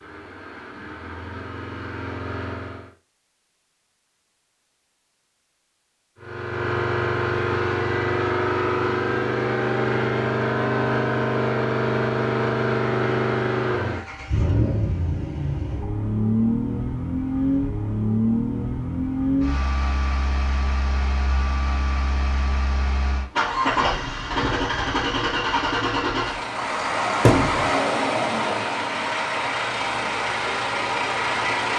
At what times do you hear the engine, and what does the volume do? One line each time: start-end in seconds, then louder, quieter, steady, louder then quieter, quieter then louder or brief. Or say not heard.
0.0-2.9 brief
6.2-31.7 steady.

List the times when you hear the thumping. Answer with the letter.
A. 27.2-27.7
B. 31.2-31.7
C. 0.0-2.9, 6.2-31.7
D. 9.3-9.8
A.